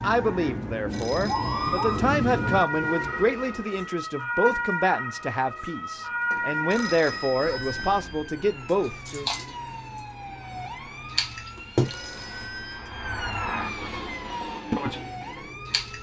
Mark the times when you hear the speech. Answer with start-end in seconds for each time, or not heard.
0.0-9.3.